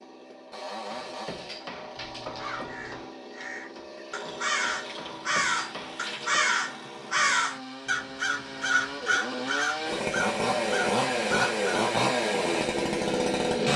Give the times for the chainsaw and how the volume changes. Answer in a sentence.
You can hear the chainsaw from 0.0 to 13.7 s, getting louder.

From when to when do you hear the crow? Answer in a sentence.
You can hear the crow from 2.4 to 11.7 s.